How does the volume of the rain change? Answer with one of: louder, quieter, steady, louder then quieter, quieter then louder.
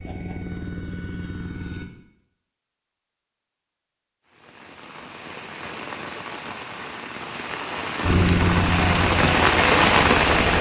louder.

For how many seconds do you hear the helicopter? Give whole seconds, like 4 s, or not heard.
4 s.